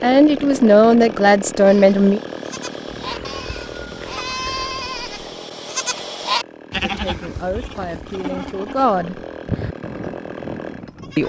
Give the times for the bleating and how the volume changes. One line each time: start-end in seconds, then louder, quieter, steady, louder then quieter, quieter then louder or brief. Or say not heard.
1.6-11.2 louder then quieter.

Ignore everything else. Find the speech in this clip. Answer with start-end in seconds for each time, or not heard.
0.0-2.2, 6.8-9.2.